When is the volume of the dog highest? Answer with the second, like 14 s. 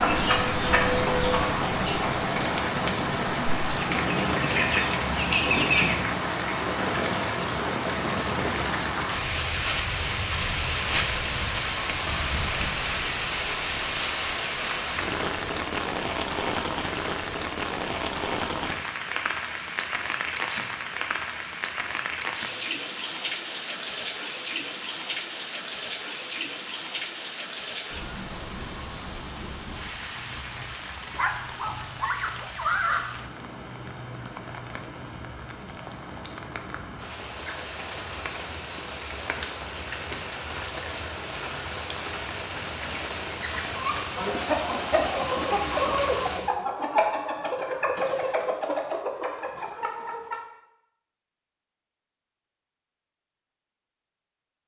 33 s.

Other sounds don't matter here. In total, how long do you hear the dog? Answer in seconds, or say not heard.
2 s.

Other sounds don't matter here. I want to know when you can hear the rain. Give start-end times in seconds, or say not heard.
0.0-46.5.